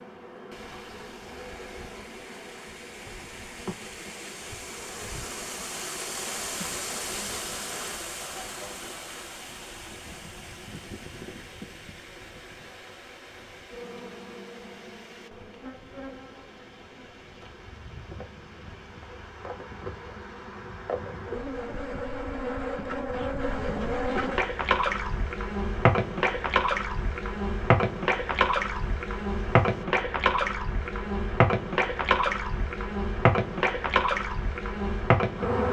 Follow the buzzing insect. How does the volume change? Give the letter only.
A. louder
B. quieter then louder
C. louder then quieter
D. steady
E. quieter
A.